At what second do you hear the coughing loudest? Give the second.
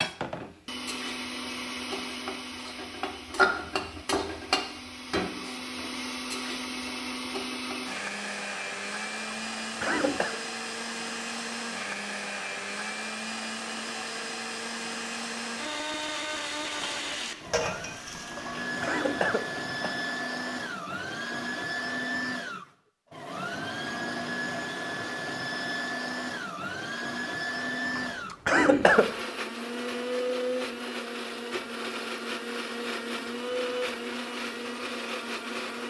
29 s.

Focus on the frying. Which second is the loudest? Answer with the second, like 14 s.
4 s.